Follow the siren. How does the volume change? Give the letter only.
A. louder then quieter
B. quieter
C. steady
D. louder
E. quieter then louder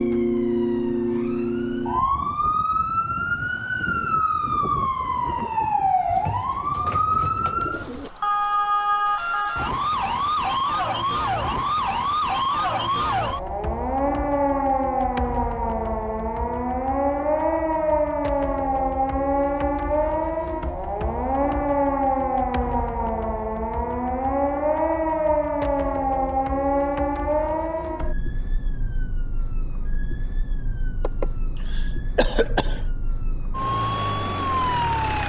B.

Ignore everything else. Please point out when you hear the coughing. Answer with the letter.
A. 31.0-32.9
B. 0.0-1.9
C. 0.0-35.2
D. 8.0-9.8
A.